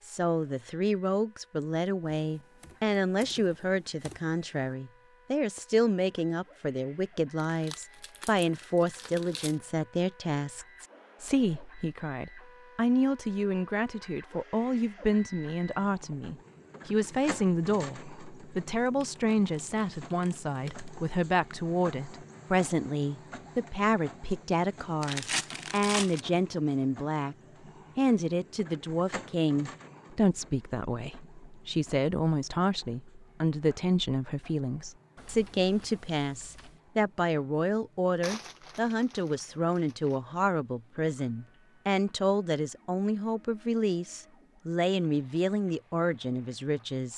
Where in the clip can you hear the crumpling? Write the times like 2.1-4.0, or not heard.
7.5-9.6, 25.0-26.2, 38.2-40.1.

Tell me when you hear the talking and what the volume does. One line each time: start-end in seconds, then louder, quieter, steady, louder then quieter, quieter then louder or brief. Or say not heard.
0.0-27.4 steady
27.9-47.1 steady.